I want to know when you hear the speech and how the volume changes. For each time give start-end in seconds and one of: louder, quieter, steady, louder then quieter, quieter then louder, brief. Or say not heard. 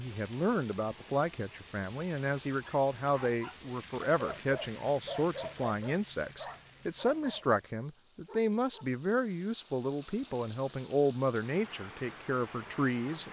0.0-13.2 steady.